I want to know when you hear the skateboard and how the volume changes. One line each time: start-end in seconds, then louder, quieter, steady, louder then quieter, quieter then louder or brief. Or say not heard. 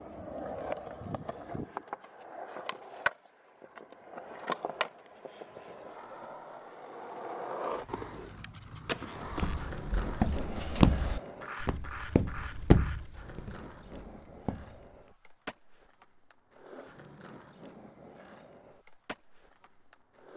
0.0-20.3 quieter.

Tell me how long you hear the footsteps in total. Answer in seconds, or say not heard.
6 s.